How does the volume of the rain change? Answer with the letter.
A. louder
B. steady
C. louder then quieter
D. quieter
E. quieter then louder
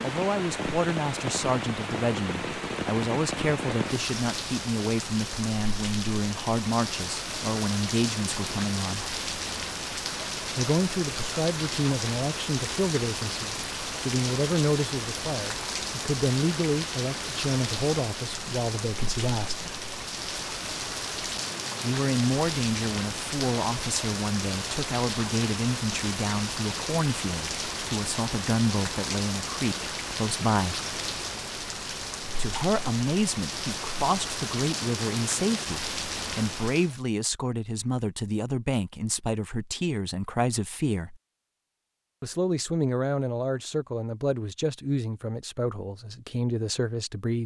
B.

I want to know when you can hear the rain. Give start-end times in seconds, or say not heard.
0.0-37.0.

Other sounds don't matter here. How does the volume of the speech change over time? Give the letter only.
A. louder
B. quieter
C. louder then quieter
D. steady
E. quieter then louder
D.